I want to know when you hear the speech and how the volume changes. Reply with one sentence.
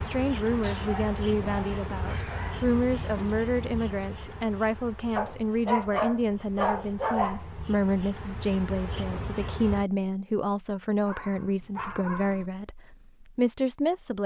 The speech can be heard from 0.1 to 14.2 s, at a steady volume.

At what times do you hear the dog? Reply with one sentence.
The dog can be heard from 0.6 to 2.6 s, from 5.2 to 7.5 s and from 11.1 to 12.5 s.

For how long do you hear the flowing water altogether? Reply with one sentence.
You can't hear the flowing water here.